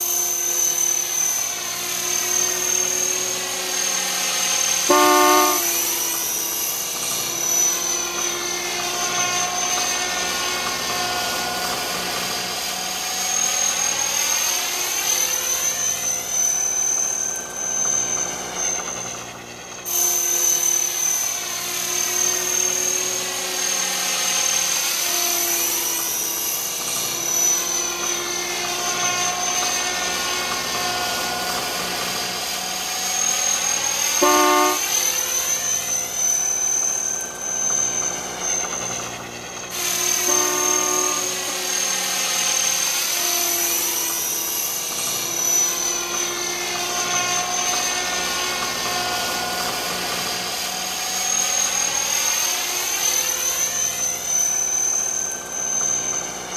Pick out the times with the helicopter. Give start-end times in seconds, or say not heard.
0.0-56.5.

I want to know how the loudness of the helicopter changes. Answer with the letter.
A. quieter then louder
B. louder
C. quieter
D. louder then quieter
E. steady
E.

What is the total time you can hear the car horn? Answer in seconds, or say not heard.
3 s.